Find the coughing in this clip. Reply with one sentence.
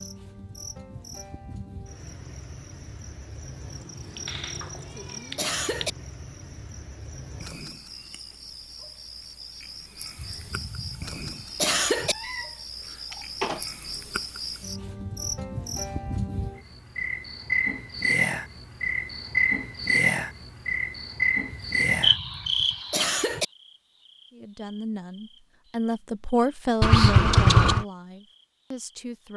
You can hear the coughing from 4.0 to 5.9 s, from 10.2 to 12.2 s and from 21.5 to 23.4 s.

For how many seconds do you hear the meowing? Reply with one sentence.
The meowing can be heard for 4 seconds in total.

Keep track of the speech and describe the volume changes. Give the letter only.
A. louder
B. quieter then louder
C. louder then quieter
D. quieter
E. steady
C.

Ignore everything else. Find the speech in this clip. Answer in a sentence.
You can hear the speech from 24.3 to 29.3 s.